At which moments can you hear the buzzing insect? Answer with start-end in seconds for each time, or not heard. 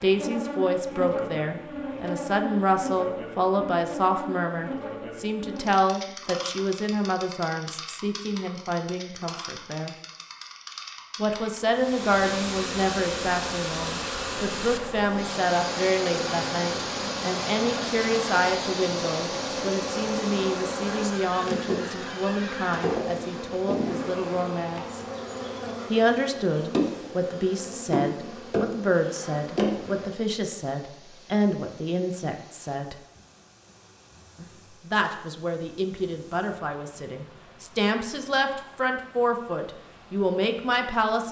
0.0-30.1.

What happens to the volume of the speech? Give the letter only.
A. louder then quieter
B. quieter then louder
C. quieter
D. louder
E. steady
E.